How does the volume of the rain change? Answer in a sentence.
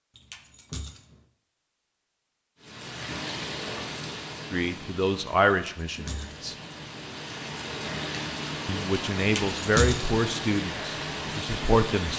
The volume of the rain goes down, then up.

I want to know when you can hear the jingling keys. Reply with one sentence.
The jingling keys can be heard from 0.1 to 1.2 s, from 5.5 to 6.5 s and from 9.2 to 10.2 s.